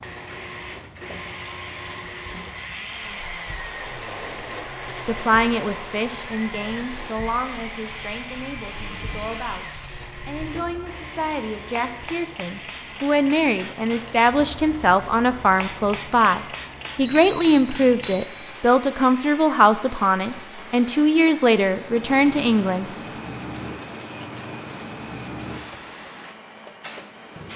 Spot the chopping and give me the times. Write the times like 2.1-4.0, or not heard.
not heard.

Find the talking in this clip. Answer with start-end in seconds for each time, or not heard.
5.0-22.9.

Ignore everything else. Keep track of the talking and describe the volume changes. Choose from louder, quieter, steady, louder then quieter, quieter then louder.
louder.